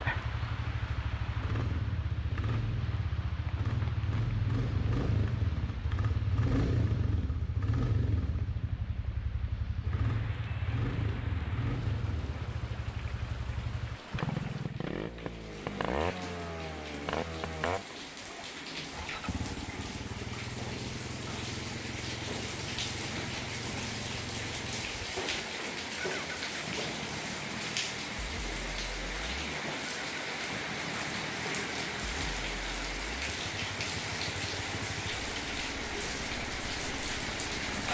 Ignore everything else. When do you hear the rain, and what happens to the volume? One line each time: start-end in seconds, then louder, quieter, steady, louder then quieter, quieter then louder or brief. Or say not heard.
0.0-37.8 louder.